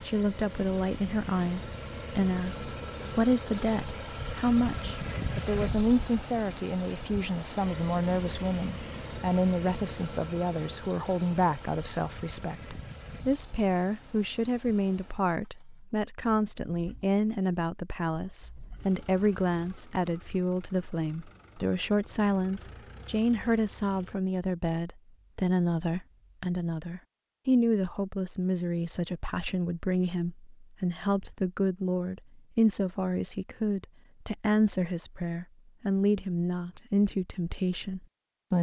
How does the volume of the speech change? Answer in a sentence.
The loudness of the speech stays about the same.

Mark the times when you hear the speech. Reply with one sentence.
You can hear the speech from 0.0 to 38.5 s.